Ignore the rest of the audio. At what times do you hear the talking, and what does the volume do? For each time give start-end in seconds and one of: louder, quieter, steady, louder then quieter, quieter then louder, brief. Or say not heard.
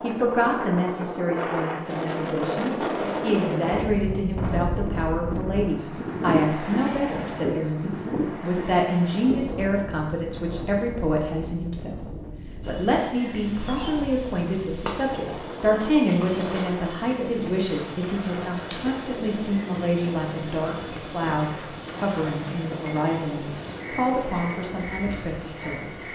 0.0-26.0 steady.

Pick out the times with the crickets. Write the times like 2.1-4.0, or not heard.
12.6-26.0.